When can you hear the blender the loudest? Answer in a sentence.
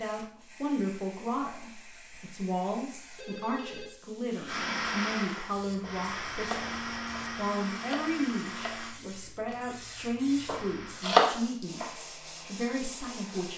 The loudest moment of the blender is at 5 seconds.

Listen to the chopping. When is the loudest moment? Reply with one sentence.
The loudest moment of the chopping is at 11 seconds.